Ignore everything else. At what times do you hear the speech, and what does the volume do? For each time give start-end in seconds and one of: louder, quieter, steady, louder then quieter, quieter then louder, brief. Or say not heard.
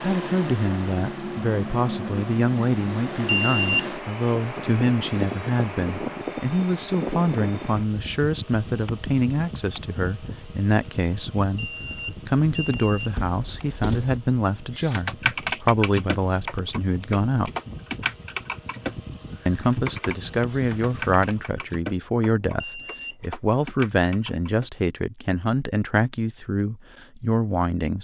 0.0-17.5 steady
19.4-28.0 steady.